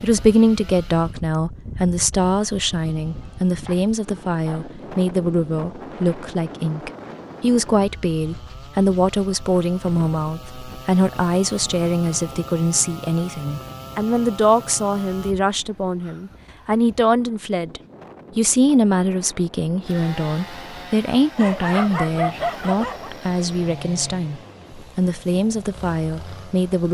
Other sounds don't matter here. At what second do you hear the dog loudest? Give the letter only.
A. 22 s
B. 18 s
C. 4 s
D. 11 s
A.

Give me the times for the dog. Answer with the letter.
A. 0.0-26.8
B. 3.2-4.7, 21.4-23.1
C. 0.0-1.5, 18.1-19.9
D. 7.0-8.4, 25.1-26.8
B.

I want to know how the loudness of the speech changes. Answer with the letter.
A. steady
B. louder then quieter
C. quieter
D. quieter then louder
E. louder
A.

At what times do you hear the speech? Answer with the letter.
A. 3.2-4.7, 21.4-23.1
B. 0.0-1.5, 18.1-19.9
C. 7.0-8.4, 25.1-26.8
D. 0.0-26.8
D.